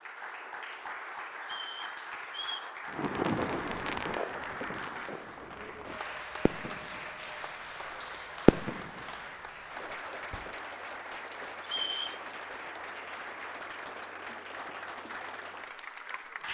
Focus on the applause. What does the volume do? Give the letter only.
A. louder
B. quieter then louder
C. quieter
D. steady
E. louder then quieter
D.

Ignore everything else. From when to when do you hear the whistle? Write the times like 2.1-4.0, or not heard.
1.4-2.7, 11.6-12.2.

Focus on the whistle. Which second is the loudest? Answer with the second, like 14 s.
12 s.